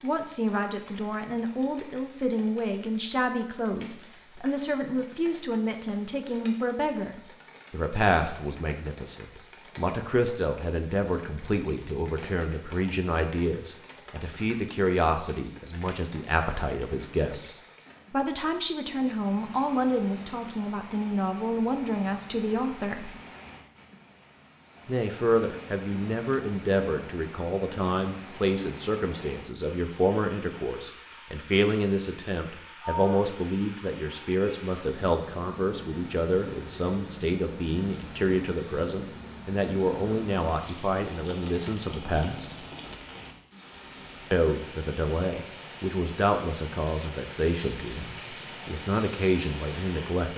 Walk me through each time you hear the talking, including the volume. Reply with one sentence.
You can hear the talking from 0.0 to 23.1 s, at a steady volume; from 24.9 to 42.5 s, at a steady volume; and from 44.3 to 50.3 s, getting quieter then louder.